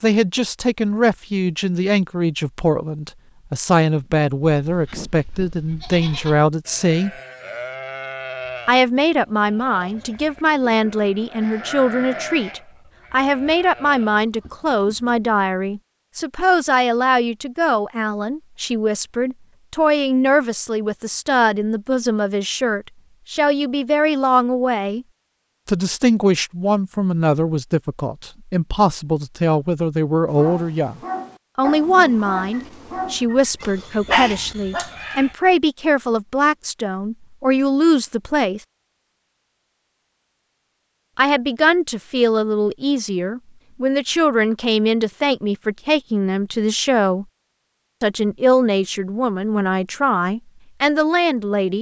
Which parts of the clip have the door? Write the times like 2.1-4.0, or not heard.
not heard.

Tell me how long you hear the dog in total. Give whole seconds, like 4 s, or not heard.
5 s.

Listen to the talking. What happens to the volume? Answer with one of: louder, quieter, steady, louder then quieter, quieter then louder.
steady.